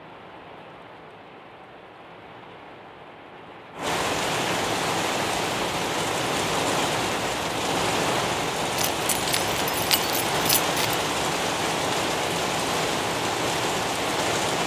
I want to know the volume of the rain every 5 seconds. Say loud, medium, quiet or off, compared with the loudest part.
medium, loud, loud.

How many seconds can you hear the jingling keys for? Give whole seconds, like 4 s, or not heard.
2 s.